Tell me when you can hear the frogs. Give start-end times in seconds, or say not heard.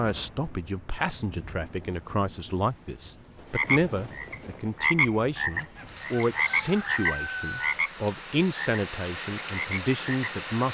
3.5-7.9, 8.6-10.3.